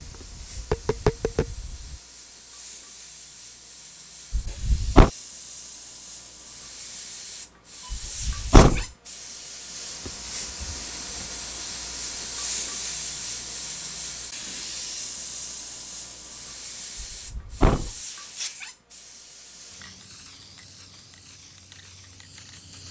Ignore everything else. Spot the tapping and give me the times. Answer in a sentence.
You can hear the tapping from 0.0 to 1.9 s.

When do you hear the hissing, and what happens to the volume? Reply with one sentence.
You can hear the hissing from 0.0 to 22.8 s, getting louder then quieter.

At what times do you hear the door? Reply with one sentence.
You can hear the door from 4.3 to 5.1 s, from 7.9 to 8.8 s and from 16.9 to 17.9 s.